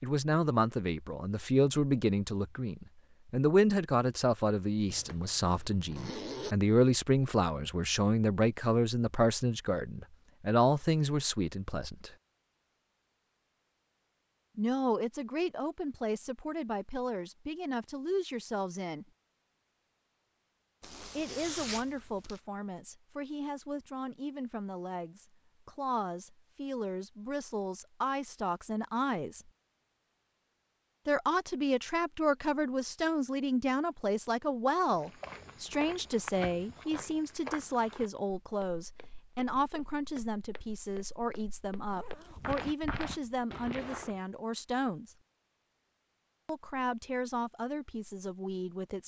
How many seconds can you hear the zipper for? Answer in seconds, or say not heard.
5 s.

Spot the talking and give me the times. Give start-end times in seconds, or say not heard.
0.0-12.1, 14.6-19.1, 21.1-29.5, 31.1-45.1, 46.5-49.0.